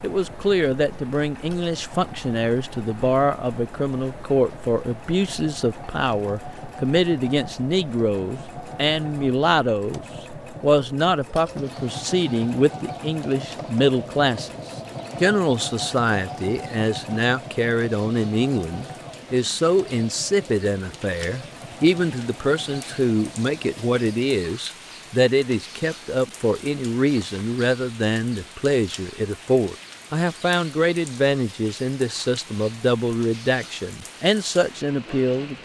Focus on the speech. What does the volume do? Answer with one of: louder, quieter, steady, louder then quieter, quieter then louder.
steady.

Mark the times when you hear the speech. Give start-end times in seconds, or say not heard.
0.0-14.5, 15.2-35.6.